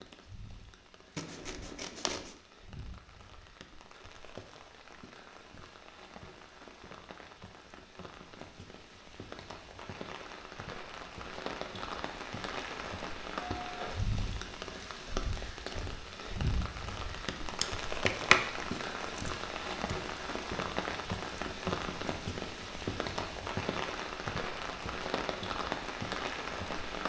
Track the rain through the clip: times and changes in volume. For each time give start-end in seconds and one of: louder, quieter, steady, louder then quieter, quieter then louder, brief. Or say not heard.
0.0-27.0 louder.